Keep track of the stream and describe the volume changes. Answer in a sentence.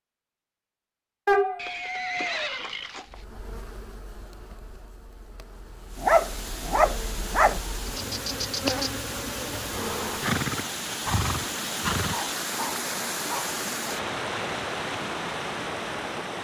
The loudness of the stream goes up.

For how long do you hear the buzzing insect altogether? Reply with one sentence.
The buzzing insect can be heard for 7 seconds in total.